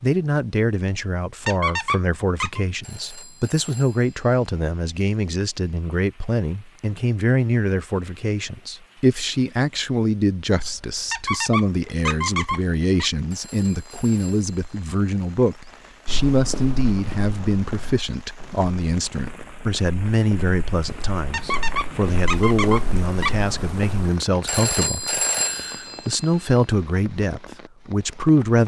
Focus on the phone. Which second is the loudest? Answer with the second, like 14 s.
25 s.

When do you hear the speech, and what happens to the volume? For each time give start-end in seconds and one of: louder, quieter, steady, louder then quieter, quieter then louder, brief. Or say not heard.
0.0-28.6 steady.